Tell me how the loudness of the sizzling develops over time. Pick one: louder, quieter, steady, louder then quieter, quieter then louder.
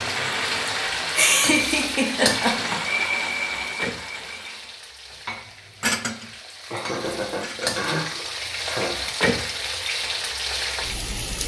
quieter then louder.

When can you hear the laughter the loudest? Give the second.
1 s.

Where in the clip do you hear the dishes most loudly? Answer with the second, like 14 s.
6 s.